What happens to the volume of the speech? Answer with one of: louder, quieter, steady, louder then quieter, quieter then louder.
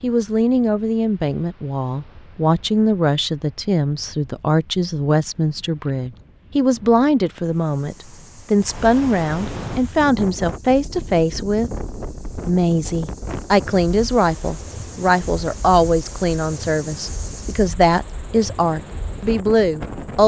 steady.